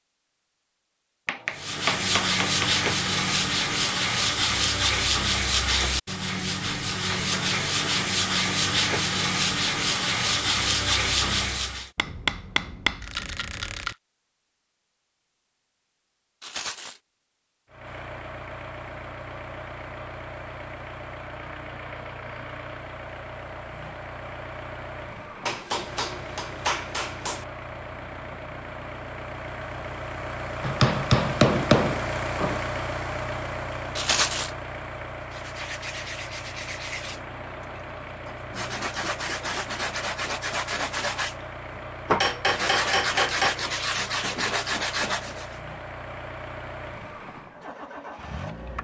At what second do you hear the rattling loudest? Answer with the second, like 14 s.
34 s.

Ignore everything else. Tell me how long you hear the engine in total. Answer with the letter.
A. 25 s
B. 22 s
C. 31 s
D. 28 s
C.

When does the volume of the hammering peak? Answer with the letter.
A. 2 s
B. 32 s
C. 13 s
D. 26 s
B.